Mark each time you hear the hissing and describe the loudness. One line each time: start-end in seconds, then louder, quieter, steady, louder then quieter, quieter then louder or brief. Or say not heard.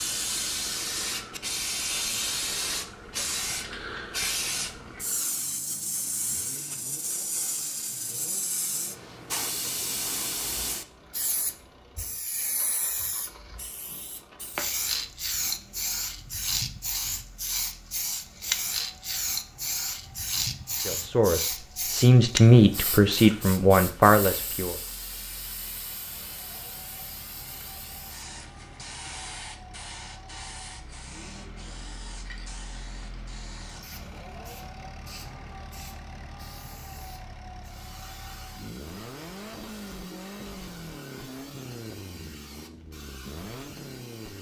0.0-44.3 quieter.